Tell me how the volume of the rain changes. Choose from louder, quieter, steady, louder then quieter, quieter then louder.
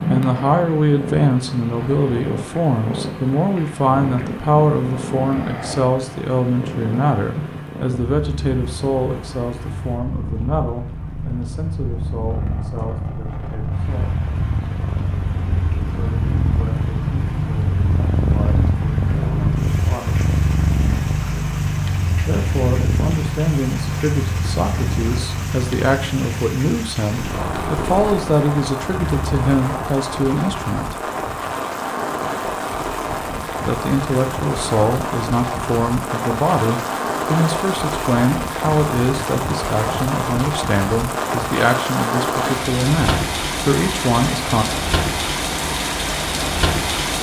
louder.